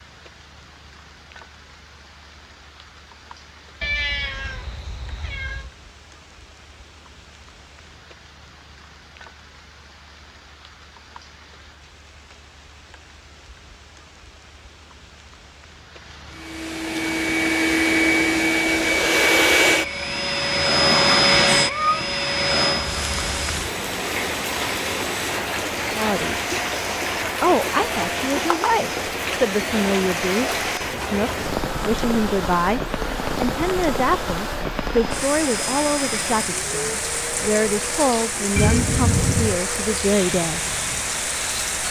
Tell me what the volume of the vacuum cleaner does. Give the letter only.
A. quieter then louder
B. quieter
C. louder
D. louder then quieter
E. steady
B.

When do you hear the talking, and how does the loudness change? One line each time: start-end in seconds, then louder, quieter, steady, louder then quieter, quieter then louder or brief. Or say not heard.
25.9-26.4 brief
27.4-40.6 steady.